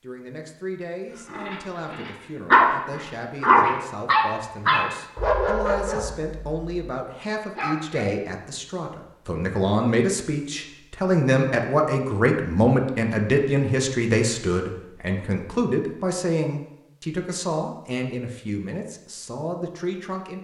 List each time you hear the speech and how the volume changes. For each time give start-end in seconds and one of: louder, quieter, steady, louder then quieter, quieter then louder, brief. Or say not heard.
0.0-20.3 louder then quieter.